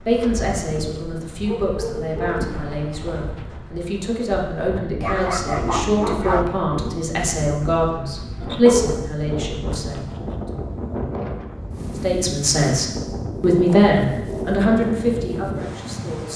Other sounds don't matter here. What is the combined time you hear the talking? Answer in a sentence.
You can hear the talking for 15 seconds altogether.